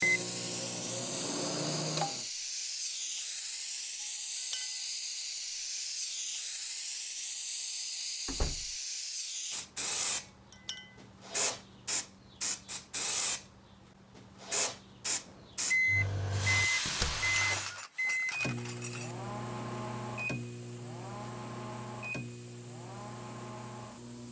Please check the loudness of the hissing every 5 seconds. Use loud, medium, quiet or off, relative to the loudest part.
loud, loud, loud, loud, quiet.